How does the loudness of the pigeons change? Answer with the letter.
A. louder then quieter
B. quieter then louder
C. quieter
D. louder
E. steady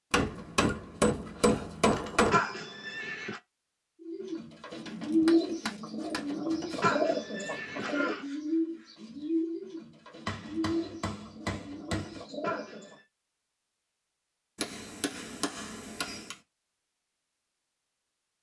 C.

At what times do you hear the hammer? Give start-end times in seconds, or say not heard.
0.1-2.4, 5.2-6.2, 10.2-12.2, 14.6-16.4.